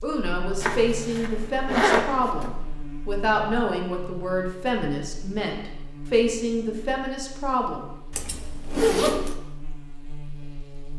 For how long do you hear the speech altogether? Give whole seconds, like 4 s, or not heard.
8 s.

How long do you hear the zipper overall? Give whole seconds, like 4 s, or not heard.
3 s.